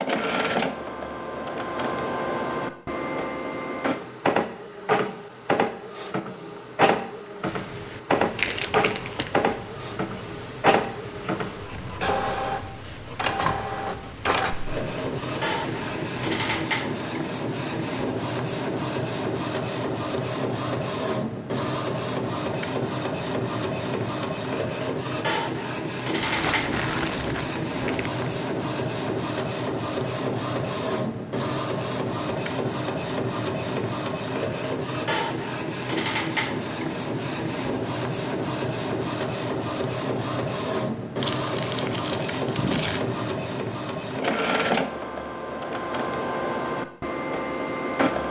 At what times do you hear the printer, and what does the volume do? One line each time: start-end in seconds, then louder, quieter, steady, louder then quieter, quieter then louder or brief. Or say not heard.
0.0-48.2 steady.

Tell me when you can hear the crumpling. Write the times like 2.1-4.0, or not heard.
8.3-9.3, 26.2-28.4, 41.2-43.0.